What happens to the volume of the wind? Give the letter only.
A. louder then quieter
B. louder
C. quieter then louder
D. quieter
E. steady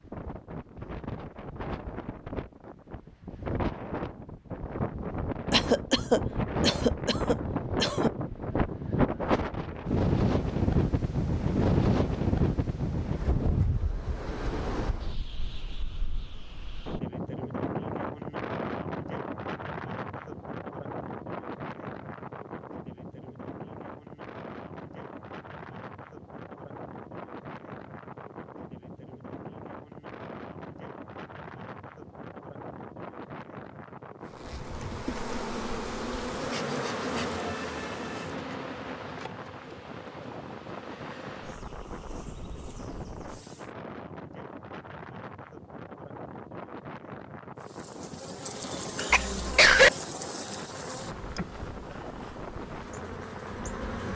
D.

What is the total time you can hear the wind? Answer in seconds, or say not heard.
54 s.